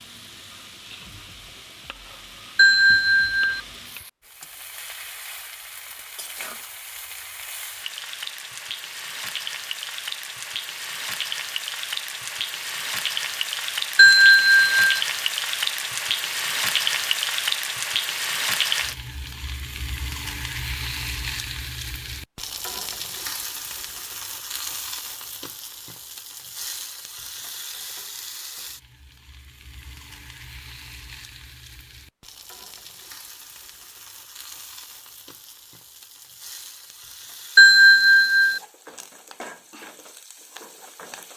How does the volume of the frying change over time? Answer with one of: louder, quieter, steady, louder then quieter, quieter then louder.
louder then quieter.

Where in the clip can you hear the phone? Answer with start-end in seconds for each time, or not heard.
2.5-3.6, 13.9-15.0, 37.5-38.6.